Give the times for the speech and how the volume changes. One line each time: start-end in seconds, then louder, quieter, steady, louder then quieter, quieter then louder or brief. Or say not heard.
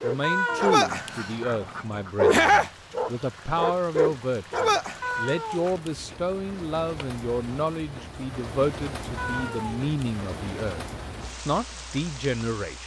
0.0-10.8 steady
11.4-12.8 brief.